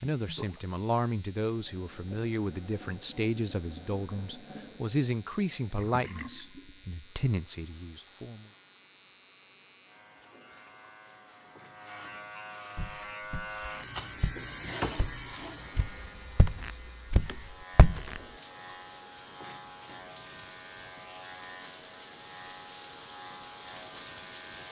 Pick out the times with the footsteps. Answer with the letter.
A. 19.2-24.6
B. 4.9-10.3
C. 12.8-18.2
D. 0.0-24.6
C.